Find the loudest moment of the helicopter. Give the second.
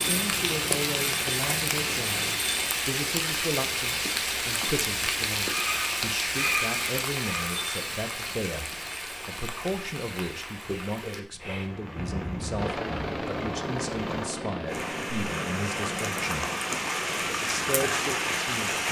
13 s.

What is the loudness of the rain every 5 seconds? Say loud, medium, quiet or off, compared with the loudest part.
loud, loud, medium, loud.